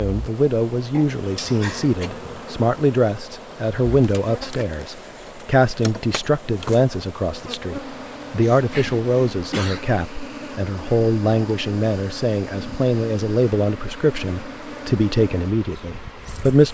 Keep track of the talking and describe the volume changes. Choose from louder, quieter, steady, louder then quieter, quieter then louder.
steady.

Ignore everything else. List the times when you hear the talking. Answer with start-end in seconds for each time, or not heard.
0.0-16.6.